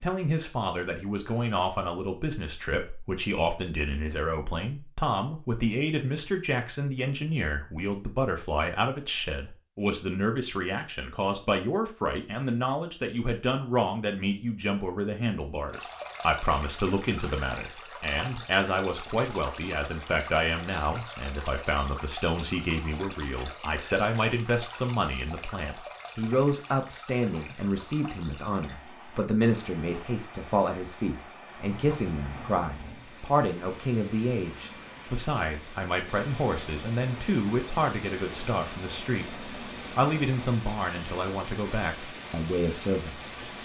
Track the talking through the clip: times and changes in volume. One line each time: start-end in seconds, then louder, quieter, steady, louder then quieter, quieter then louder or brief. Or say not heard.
0.0-43.4 steady.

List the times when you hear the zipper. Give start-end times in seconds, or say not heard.
not heard.